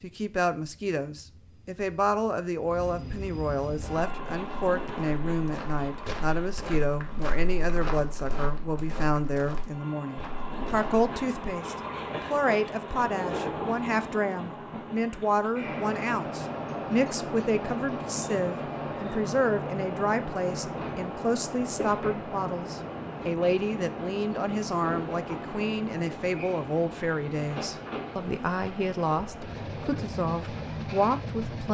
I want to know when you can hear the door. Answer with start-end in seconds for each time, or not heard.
not heard.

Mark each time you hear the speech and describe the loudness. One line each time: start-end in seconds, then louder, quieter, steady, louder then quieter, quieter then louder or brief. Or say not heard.
0.0-31.6 steady.